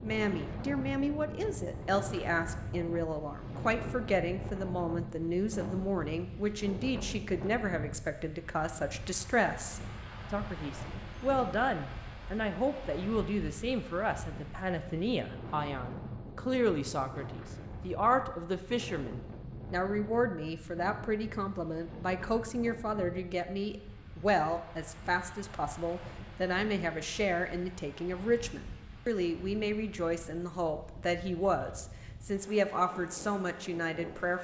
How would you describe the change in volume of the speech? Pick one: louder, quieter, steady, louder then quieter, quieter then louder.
steady.